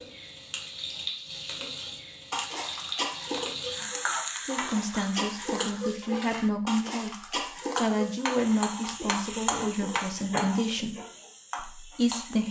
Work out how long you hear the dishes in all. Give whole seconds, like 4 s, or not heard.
8 s.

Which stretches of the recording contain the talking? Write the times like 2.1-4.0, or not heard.
4.5-7.2, 7.8-10.9, 11.8-12.4.